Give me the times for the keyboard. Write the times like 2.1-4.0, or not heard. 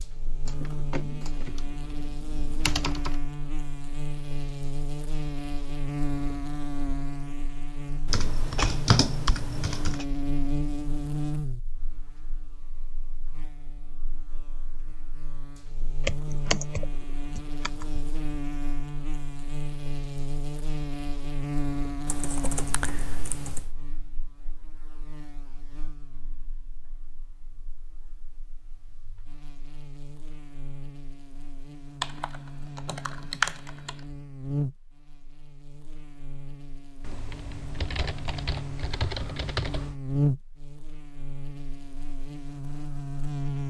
0.5-3.1, 8.1-10.1, 16.1-18.0, 22.1-23.8, 32.0-33.9, 37.0-40.0.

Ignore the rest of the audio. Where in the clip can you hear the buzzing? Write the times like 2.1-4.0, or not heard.
0.0-43.6.